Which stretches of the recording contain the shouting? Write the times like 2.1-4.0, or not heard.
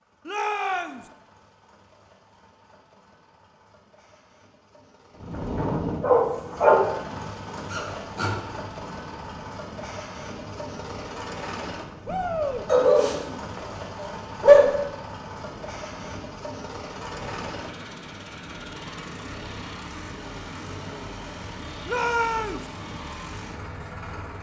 0.2-1.1, 12.1-12.7, 21.9-22.6.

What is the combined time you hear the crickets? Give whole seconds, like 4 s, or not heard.
not heard.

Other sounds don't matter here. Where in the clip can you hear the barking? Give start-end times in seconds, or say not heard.
6.0-8.3, 12.7-14.7.